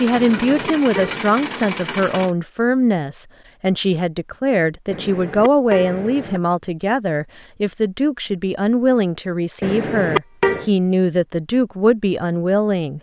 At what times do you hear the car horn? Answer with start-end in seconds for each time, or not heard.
0.1-1.2, 4.9-6.4, 9.6-10.7.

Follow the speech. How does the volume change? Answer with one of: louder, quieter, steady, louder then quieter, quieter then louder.
steady.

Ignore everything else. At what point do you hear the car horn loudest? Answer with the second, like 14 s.
10 s.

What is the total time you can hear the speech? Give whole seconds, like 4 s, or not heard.
13 s.